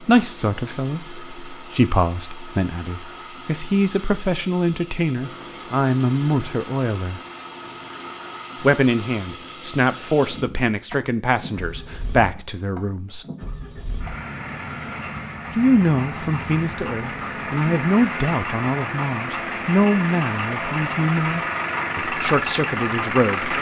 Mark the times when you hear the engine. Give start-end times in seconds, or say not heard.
0.0-23.5.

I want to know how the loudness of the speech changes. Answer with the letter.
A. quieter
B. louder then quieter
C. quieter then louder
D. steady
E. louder
D.